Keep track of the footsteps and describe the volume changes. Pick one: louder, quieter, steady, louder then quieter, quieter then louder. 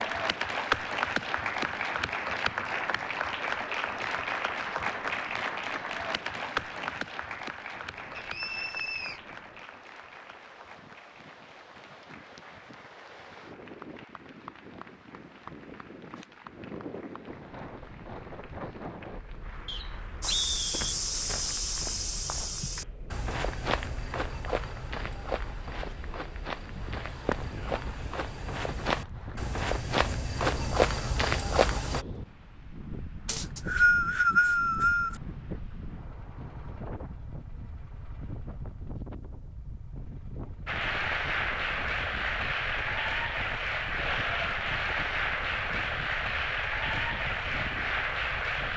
quieter then louder.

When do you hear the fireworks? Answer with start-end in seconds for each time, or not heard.
not heard.